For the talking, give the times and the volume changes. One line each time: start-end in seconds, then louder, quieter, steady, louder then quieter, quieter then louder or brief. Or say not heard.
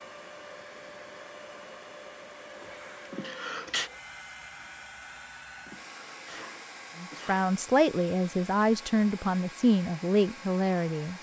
7.0-11.1 steady.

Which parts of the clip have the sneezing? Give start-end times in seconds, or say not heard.
3.1-3.9, 5.7-7.5.